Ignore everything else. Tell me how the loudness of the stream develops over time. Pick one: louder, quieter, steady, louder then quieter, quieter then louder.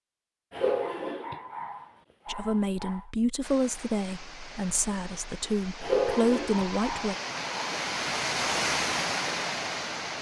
louder.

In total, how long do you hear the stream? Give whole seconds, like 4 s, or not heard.
7 s.